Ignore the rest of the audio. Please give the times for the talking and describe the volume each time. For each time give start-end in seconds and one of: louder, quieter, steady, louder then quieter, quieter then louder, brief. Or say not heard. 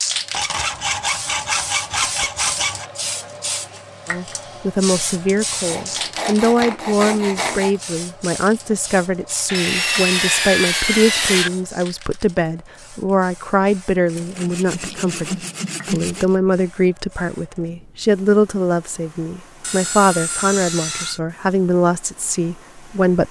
4.0-23.2 steady.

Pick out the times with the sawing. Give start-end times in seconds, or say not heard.
0.3-2.9, 5.7-7.8, 9.4-11.5, 14.2-16.4, 19.6-21.2.